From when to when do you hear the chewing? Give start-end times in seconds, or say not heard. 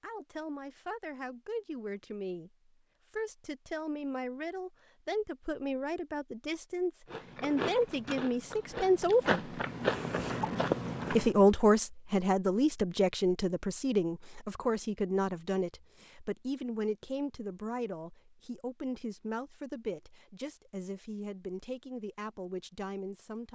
7.1-11.3.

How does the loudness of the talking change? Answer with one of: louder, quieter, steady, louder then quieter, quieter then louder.
louder then quieter.